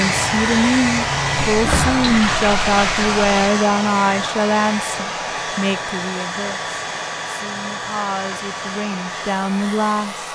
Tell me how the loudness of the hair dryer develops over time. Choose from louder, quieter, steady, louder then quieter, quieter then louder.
quieter.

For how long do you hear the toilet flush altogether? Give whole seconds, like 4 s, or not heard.
2 s.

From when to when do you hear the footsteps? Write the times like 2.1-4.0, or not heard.
not heard.